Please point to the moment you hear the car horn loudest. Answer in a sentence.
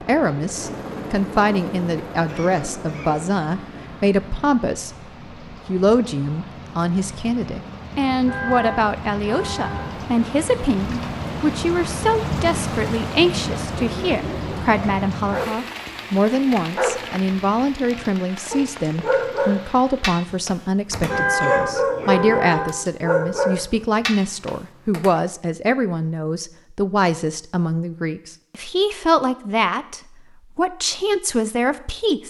The volume of the car horn peaks at 21 seconds.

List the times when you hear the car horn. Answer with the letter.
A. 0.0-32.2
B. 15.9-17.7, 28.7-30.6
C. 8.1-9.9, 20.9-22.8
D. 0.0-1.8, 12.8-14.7
C.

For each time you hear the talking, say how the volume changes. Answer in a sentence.
The talking can be heard from 0.0 to 32.2 s, at a steady volume.